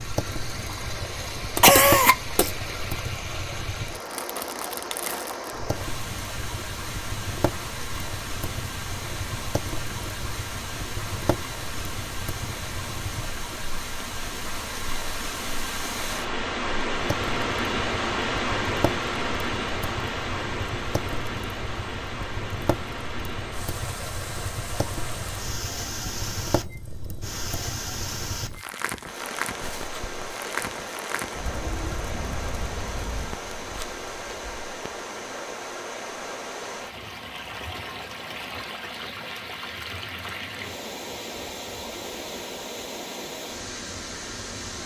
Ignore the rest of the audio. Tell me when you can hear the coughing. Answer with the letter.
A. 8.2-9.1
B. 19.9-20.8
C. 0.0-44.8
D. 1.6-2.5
D.